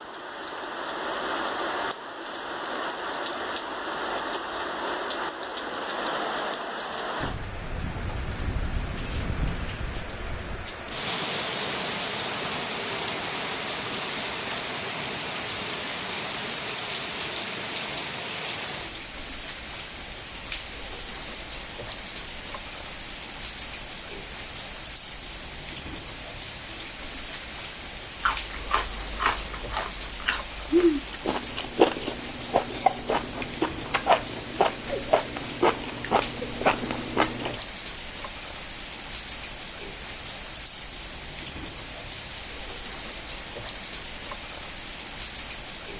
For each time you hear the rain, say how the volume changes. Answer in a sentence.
You can hear the rain from 0.0 to 45.9 s, at a steady volume.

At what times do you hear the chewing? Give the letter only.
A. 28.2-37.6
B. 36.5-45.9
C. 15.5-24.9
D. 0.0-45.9
A.